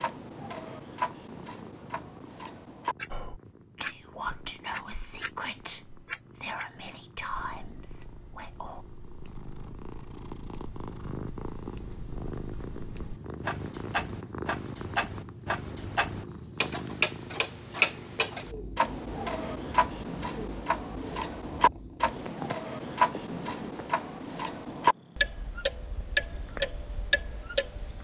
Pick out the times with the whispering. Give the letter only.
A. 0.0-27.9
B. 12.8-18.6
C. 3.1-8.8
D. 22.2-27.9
C.